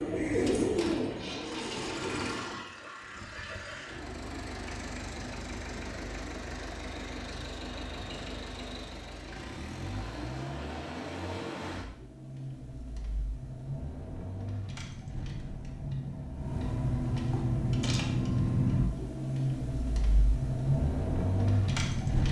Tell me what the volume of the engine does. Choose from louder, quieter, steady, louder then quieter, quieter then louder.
louder.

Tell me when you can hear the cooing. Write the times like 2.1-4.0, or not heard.
0.0-2.6.